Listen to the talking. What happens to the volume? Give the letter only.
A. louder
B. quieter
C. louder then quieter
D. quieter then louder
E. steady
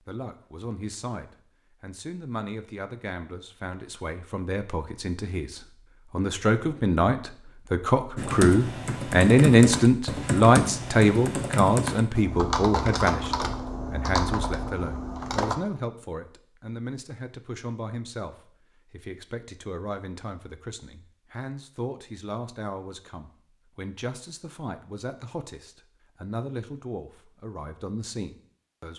C.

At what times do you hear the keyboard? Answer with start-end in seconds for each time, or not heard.
8.2-15.6.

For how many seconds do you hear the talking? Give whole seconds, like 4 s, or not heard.
29 s.